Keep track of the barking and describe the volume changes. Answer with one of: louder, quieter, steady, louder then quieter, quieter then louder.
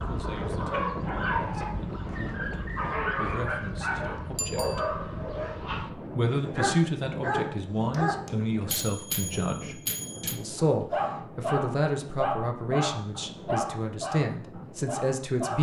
steady.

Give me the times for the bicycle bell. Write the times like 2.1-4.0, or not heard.
4.3-4.8, 7.9-10.4.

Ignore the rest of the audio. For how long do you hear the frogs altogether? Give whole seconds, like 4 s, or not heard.
not heard.